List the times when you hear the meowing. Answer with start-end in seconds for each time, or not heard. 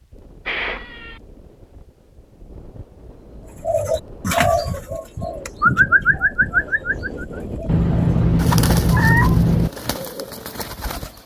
0.5-1.2, 7.7-9.7.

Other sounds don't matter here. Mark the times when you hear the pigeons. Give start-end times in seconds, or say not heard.
3.6-11.2.